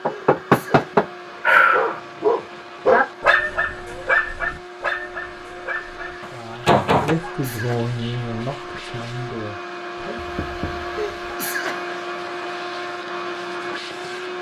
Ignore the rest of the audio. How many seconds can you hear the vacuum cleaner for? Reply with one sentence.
The vacuum cleaner can be heard for 14 seconds in total.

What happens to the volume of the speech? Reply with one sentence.
The volume of the speech goes down.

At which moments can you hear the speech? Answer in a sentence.
You can hear the speech from 6.2 to 10.3 s.